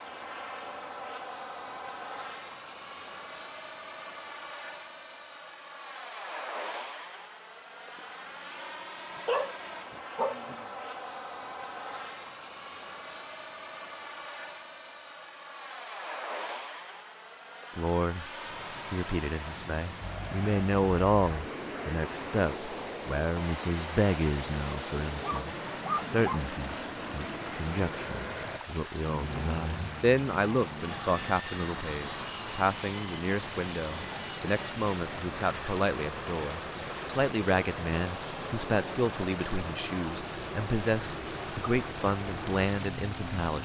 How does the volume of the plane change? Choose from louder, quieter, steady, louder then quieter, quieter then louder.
steady.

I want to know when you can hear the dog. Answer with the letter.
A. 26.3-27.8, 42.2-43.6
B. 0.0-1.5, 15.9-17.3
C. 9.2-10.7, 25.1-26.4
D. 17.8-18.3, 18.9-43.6
C.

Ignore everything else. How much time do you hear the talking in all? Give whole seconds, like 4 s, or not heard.
25 s.